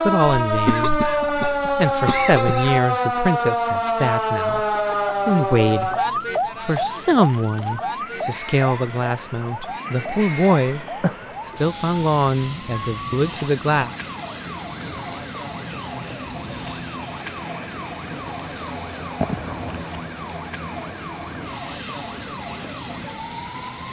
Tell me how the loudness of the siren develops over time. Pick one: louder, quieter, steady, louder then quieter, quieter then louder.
quieter.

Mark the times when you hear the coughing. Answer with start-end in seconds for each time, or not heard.
0.5-2.9, 11.0-11.6, 19.2-19.9.